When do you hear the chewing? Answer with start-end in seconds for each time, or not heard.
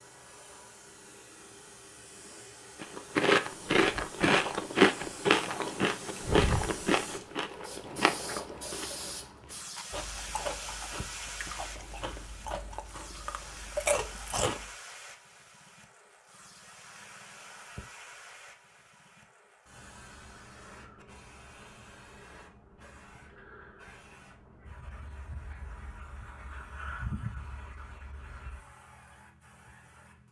2.8-14.7.